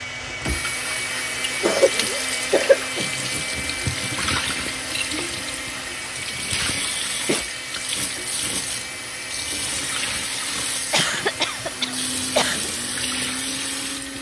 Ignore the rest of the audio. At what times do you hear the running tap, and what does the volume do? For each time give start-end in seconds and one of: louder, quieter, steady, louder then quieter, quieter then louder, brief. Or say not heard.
0.0-14.1 steady.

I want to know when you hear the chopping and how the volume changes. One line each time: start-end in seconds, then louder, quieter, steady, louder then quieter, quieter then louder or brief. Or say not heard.
not heard.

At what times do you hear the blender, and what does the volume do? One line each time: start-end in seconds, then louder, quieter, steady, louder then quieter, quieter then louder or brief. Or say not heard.
0.0-14.1 quieter.